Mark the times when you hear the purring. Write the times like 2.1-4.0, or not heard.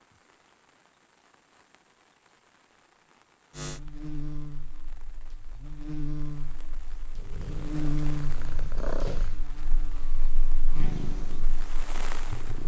7.2-9.4, 10.7-12.6.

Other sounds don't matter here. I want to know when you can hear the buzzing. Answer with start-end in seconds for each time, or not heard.
3.5-12.6.